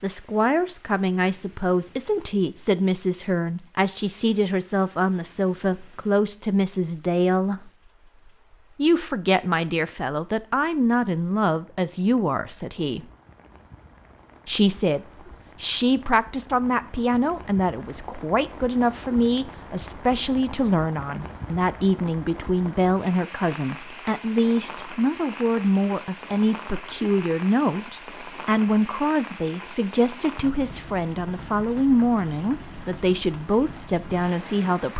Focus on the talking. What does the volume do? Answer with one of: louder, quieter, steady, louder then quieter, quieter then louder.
steady.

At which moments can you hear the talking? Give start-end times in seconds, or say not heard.
0.0-7.7, 8.8-13.1, 14.4-34.9.